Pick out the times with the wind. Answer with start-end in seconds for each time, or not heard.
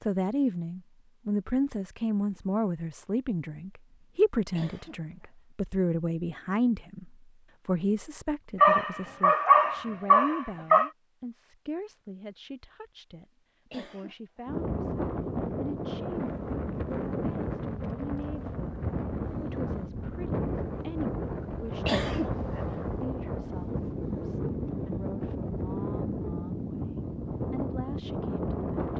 14.4-28.9.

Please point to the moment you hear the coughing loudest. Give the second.
22 s.